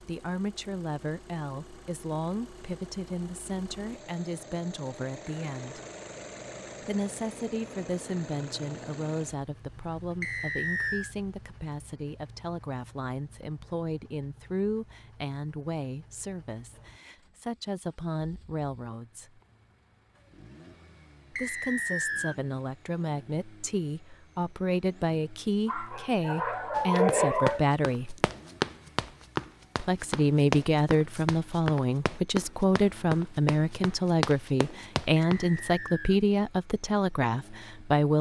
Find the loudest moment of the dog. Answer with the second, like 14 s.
27 s.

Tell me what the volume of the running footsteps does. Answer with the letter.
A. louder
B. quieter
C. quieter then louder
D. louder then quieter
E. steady
E.